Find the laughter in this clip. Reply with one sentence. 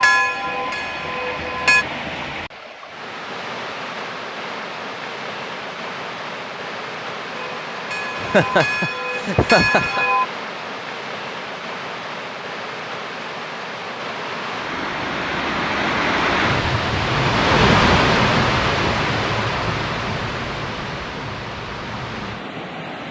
The laughter can be heard from 8.2 to 10.1 s.